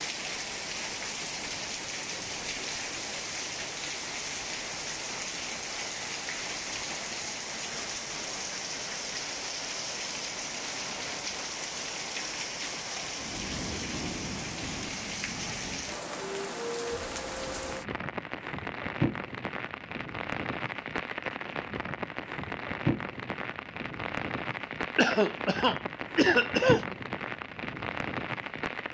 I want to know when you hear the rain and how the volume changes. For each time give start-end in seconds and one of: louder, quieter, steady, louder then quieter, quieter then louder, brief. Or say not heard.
0.0-28.8 steady.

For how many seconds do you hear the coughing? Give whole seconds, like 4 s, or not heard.
2 s.